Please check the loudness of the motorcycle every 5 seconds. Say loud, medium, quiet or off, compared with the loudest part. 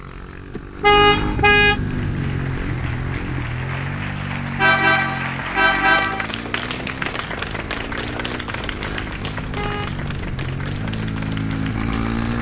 loud, medium, loud.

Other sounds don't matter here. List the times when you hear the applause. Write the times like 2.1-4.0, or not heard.
1.8-12.3.